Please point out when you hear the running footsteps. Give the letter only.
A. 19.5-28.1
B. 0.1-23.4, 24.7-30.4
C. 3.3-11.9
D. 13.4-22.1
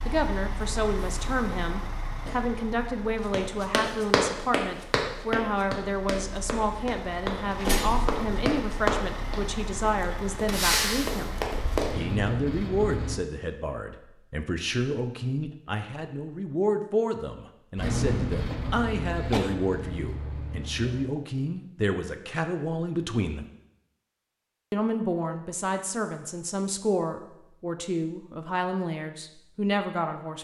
C.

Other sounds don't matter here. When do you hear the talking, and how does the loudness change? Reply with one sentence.
The talking can be heard from 0.1 to 23.4 s, at a steady volume; and from 24.7 to 30.4 s, at a steady volume.